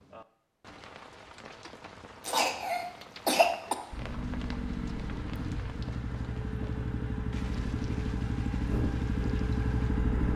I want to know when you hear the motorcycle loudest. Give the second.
10 s.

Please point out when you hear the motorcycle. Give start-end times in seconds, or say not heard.
3.9-10.3.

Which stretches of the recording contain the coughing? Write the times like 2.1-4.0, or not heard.
2.2-3.8.